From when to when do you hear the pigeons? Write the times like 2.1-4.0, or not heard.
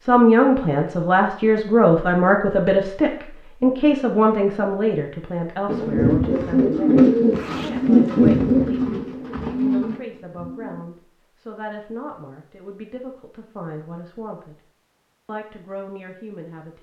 5.7-10.8.